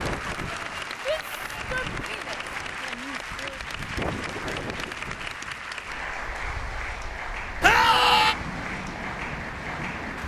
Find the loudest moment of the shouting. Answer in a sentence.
The loudest moment of the shouting is at 8 seconds.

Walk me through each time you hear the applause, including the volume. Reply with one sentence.
You can hear the applause from 0.0 to 10.2 s, at a steady volume.